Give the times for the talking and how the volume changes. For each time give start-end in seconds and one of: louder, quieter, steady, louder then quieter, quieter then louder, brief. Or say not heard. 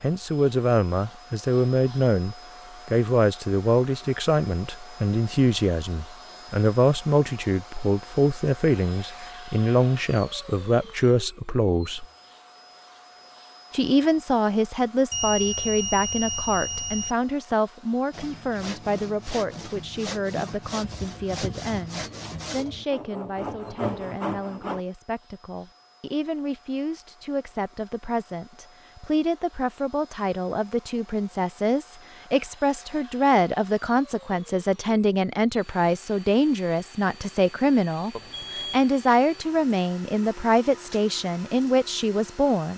0.0-12.1 steady
13.7-42.7 quieter then louder.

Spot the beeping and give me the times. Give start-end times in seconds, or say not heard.
15.1-17.1, 38.1-38.9.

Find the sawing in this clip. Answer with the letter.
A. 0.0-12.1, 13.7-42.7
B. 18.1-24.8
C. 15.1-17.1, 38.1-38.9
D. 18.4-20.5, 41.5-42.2
B.